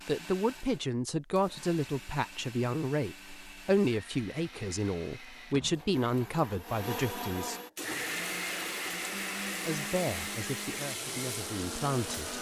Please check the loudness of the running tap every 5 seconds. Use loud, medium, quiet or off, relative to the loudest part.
off, loud, loud.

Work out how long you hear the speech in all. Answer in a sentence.
The speech can be heard for 10 seconds in total.